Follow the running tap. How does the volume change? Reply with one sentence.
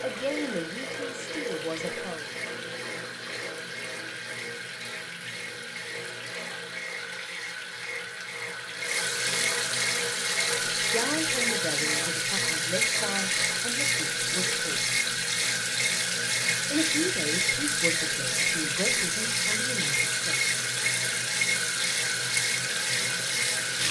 The loudness of the running tap goes up.